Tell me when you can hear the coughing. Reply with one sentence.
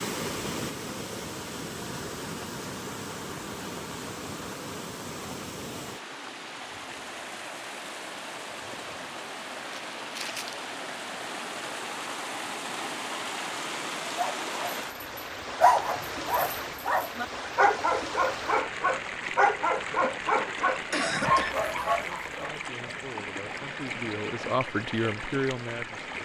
You can hear the coughing from 20.9 to 21.6 s.